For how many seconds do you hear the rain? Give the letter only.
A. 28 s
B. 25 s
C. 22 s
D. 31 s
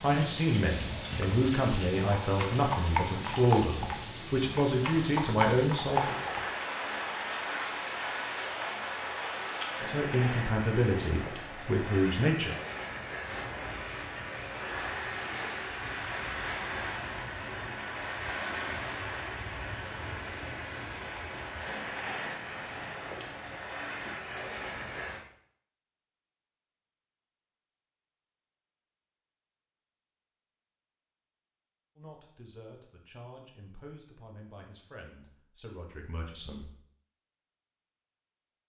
B.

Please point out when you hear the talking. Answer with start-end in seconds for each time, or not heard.
0.0-6.2, 9.8-12.6, 31.9-36.7.